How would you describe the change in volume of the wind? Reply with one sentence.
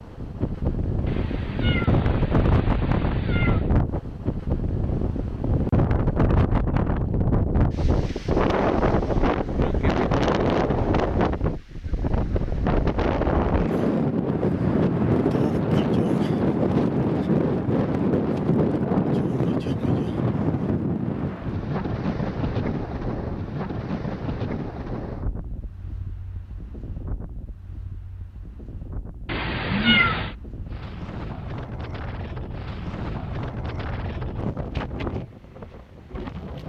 The volume of the wind goes down.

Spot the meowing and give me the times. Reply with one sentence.
You can hear the meowing from 1.1 to 3.7 s and from 29.2 to 30.4 s.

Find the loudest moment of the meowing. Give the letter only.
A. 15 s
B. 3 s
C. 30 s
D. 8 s
C.